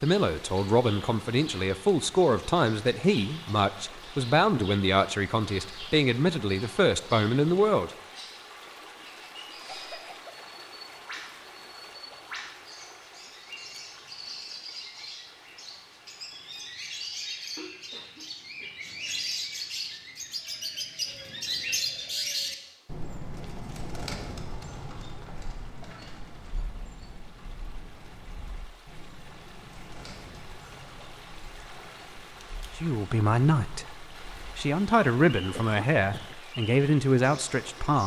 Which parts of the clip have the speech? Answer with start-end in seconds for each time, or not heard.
0.0-7.9, 32.8-38.0.